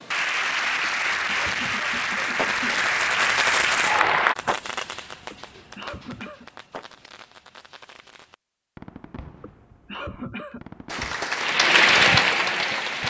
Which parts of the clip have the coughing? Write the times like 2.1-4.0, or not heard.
0.8-2.9, 5.3-6.5, 9.4-10.7.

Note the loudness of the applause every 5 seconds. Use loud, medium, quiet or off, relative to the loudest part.
loud, off, loud.